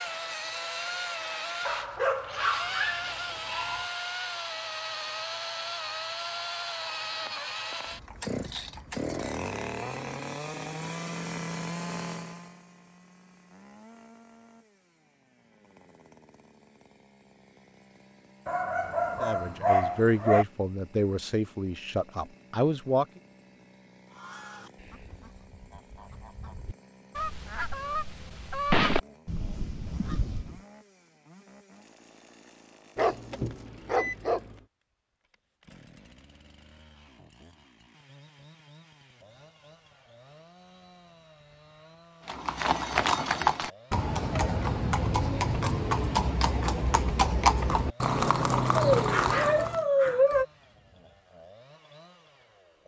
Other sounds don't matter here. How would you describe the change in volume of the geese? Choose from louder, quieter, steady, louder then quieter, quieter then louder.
louder then quieter.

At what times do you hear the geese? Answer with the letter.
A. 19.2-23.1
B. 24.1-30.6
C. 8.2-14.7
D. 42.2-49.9
B.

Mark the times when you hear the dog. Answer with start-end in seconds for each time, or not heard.
1.6-3.9, 18.4-20.4, 33.0-34.5, 48.9-50.5.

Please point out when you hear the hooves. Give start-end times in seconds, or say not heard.
42.2-49.9.